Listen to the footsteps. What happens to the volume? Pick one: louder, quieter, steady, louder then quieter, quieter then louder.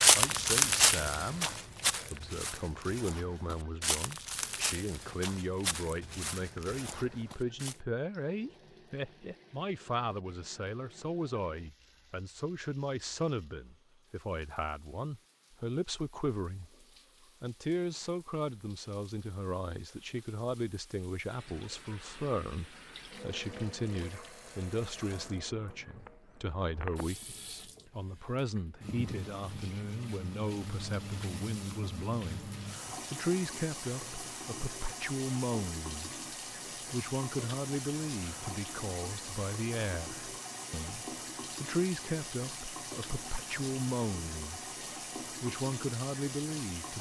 quieter.